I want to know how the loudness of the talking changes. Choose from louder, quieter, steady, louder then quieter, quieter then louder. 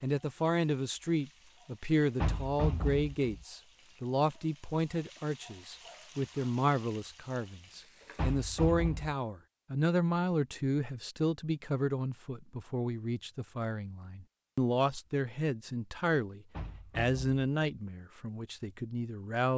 steady.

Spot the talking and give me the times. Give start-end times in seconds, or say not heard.
0.0-19.5.